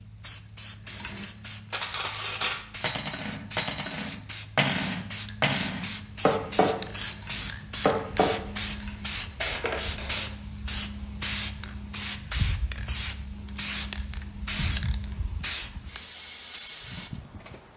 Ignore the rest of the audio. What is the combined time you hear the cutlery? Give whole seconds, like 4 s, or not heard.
9 s.